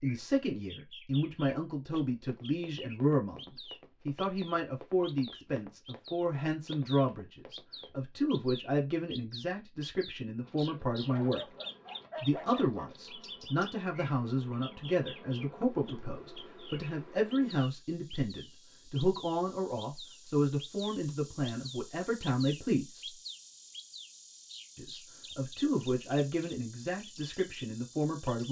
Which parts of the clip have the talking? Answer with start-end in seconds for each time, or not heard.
0.0-11.4, 12.2-23.1, 24.8-28.4.